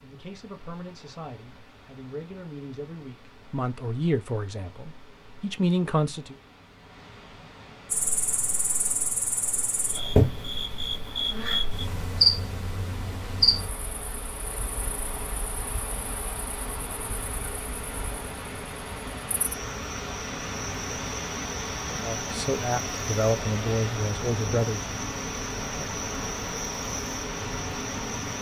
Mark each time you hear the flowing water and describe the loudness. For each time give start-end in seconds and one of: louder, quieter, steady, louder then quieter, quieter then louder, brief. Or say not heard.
0.0-28.3 louder.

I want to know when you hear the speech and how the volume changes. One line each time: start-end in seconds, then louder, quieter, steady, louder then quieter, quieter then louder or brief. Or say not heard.
0.0-6.3 louder
22.0-24.8 brief.